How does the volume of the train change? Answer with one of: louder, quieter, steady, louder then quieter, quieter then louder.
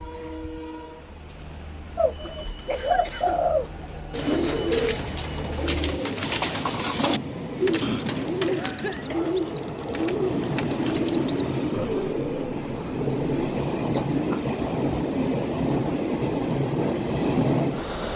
louder.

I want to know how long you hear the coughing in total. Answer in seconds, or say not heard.
3 s.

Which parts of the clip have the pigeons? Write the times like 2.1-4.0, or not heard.
1.9-13.6.